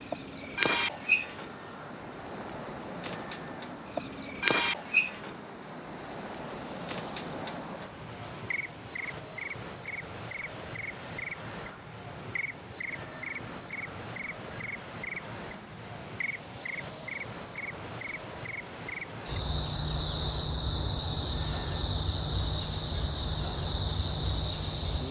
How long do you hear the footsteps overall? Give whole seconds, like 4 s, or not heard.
not heard.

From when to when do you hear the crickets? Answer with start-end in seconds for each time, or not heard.
0.0-25.0.